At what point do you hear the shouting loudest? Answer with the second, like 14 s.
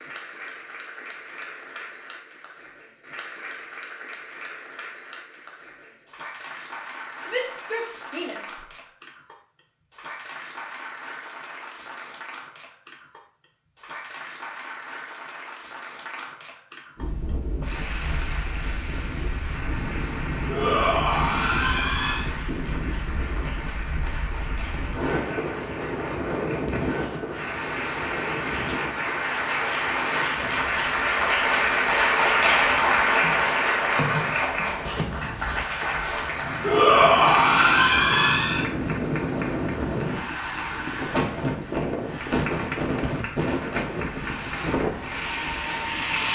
37 s.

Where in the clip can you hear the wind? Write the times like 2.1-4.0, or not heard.
16.9-46.3.